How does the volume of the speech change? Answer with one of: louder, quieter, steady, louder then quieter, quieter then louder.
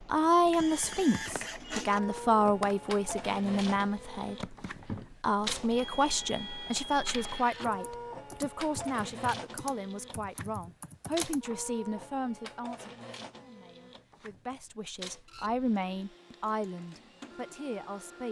quieter.